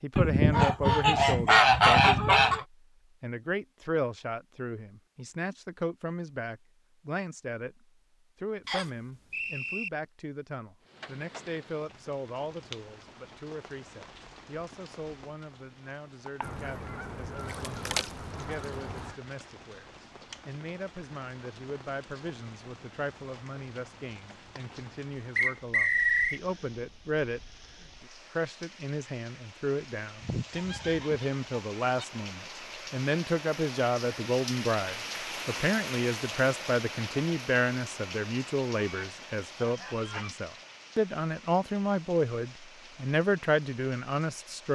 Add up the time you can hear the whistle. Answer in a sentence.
You can hear the whistle for 2 seconds altogether.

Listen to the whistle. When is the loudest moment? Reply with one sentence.
The loudest moment of the whistle is at 26 seconds.